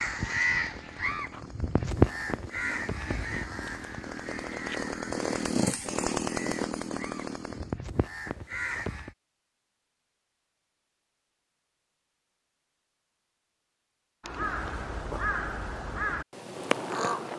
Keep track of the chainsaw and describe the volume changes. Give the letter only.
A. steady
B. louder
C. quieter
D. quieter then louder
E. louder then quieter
B.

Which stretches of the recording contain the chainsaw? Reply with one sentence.
You can hear the chainsaw from 0.0 to 7.8 s.